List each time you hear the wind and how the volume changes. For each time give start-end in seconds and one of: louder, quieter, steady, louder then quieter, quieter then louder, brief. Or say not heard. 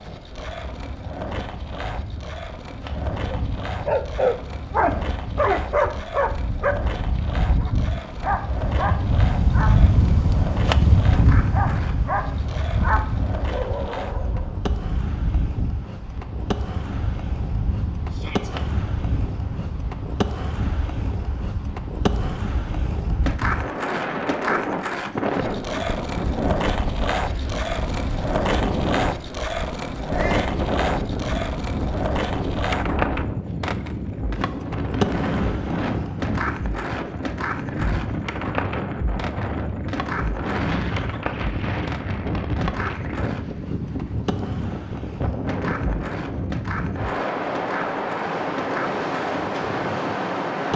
0.2-50.7 steady.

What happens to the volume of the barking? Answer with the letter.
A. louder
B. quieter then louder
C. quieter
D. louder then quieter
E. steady
C.